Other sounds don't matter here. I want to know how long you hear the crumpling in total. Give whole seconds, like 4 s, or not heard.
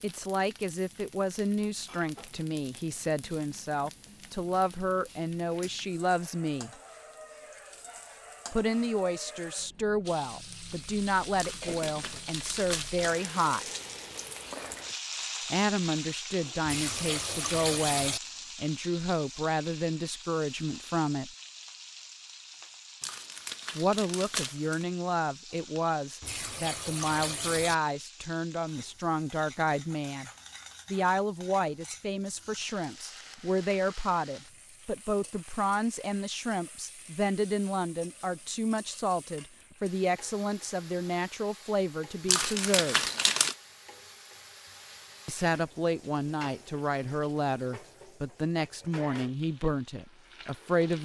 5 s.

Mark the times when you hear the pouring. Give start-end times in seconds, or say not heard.
16.6-18.2, 26.2-27.8.